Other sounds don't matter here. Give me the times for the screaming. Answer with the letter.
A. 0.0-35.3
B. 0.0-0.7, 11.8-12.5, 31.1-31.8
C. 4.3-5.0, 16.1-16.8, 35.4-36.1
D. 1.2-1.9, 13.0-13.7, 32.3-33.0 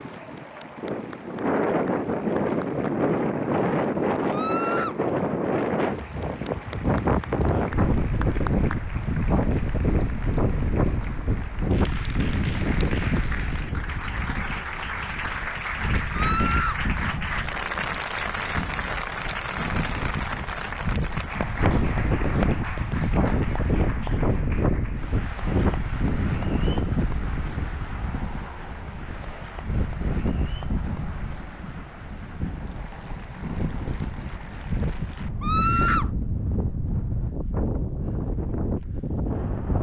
C.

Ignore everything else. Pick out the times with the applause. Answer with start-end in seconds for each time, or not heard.
0.0-35.3.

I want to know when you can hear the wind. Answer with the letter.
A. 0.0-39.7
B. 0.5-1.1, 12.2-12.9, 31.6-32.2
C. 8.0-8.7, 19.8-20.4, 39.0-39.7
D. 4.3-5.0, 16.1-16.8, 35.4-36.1
A.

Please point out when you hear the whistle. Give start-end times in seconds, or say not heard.
not heard.